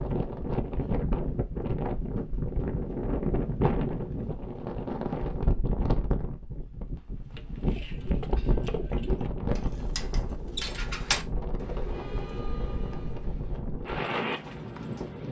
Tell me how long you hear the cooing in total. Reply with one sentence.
The cooing can be heard for 8 seconds in total.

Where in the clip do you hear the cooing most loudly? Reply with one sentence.
The volume of the cooing peaks at 11 seconds.